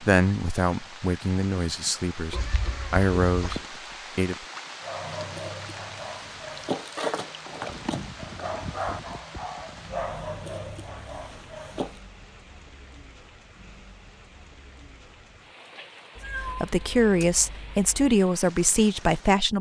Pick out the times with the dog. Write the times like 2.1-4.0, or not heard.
4.8-12.0.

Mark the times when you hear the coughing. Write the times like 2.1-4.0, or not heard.
not heard.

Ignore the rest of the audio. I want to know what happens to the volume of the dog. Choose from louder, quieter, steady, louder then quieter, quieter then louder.
louder then quieter.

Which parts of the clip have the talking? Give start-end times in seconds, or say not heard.
0.0-4.5, 16.4-19.5.